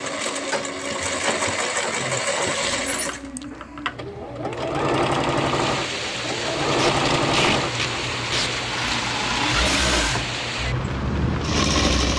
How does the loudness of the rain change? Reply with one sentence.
The loudness of the rain stays about the same.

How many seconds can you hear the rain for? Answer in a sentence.
You can hear the rain for 7 seconds altogether.